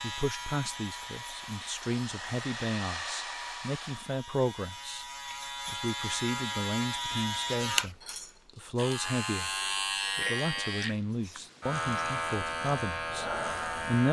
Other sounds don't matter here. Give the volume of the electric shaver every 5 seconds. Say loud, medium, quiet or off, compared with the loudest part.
medium, loud, loud.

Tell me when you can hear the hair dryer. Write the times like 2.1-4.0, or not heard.
0.2-4.2.